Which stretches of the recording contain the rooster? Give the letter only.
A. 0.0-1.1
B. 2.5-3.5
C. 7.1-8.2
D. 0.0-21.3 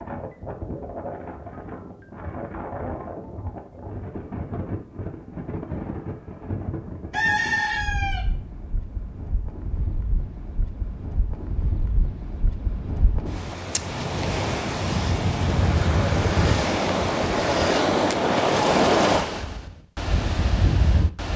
C.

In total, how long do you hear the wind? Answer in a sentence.
You can hear the wind for 21 seconds altogether.